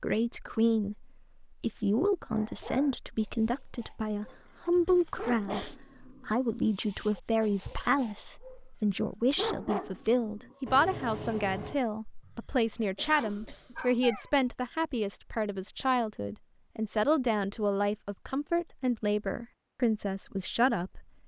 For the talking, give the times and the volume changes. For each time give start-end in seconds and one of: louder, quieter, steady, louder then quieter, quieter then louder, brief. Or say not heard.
0.0-21.1 steady.